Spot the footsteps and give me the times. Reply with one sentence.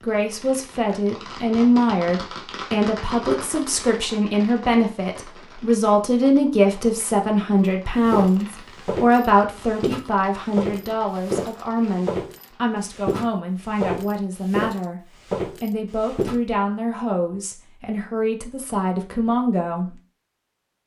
The footsteps can be heard from 8.1 to 16.4 s.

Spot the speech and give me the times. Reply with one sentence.
The speech can be heard from 0.0 to 19.9 s.